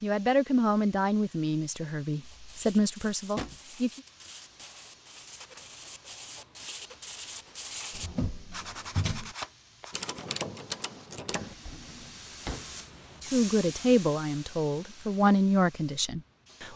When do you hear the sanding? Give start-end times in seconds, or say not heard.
2.2-10.3.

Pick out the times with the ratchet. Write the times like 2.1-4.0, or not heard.
9.9-11.6.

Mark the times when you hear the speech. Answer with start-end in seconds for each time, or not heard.
0.0-4.0, 13.2-16.7.